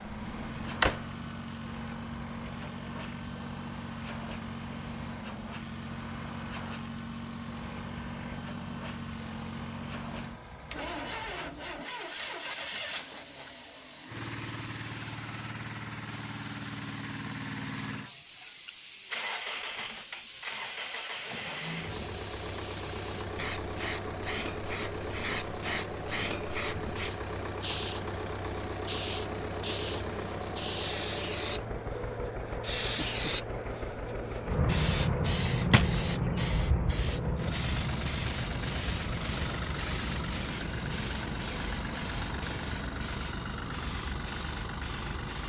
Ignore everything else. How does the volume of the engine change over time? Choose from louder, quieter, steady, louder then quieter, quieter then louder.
steady.